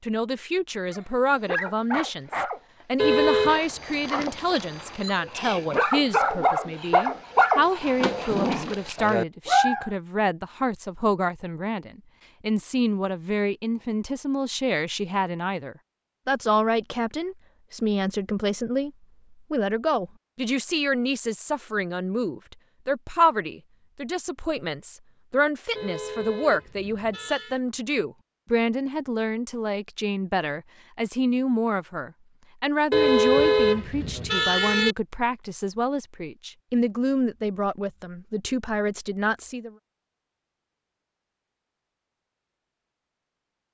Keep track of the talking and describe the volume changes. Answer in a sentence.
The volume of the talking stays about the same.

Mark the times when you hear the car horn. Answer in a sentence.
The car horn can be heard from 3.0 to 3.6 s, from 25.8 to 27.6 s and from 32.9 to 35.0 s.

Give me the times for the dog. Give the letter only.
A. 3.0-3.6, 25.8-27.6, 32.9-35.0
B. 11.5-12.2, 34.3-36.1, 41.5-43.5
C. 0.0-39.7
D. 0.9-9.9
D.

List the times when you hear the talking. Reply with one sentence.
You can hear the talking from 0.0 to 39.7 s.